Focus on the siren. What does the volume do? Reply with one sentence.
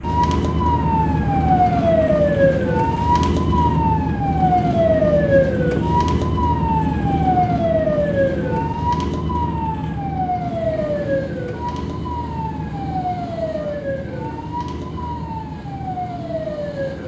The volume of the siren goes down.